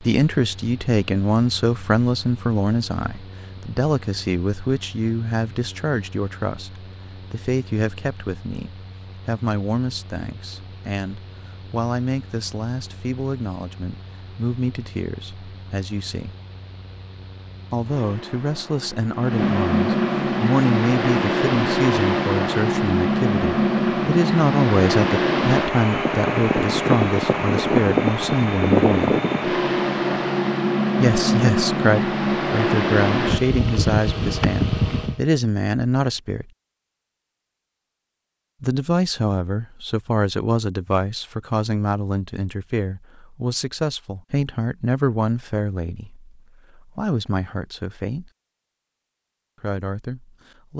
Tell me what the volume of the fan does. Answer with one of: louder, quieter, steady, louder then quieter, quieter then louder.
louder.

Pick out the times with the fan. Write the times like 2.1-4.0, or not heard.
0.0-35.2.